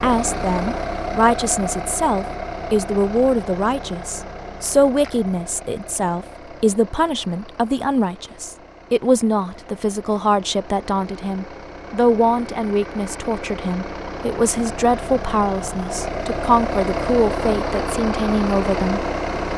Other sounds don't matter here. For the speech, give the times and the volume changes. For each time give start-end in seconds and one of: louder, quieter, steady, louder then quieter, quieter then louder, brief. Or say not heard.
0.0-19.4 steady.